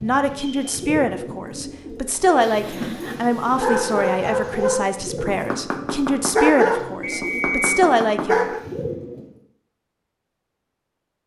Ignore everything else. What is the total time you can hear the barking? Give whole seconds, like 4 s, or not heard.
6 s.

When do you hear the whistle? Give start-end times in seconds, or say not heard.
0.3-0.8, 7.0-7.8.